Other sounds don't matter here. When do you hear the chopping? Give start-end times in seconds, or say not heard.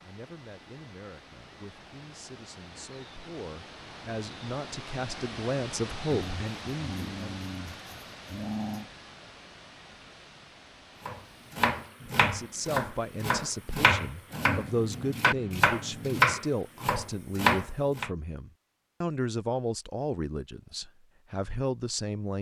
11.1-18.1.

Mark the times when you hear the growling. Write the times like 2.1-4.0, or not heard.
6.1-8.9, 14.3-16.2.